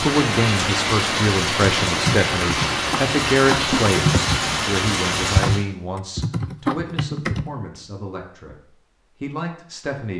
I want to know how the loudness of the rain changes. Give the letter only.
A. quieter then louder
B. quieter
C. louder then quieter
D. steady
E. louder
D.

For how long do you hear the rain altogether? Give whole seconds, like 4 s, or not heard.
6 s.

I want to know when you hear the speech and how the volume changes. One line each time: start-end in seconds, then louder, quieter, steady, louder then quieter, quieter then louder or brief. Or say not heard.
0.0-8.6 quieter
9.2-10.1 brief.